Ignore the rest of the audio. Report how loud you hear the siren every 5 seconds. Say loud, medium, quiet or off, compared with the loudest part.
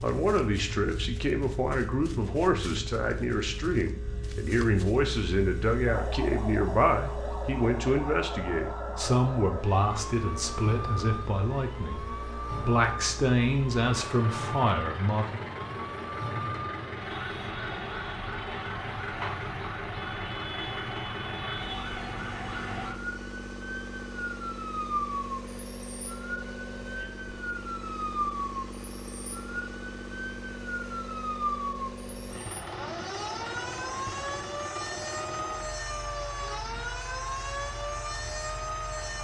medium, loud, loud, loud, loud, loud, loud, loud.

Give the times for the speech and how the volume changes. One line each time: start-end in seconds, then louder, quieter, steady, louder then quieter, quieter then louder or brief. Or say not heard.
0.0-15.4 steady.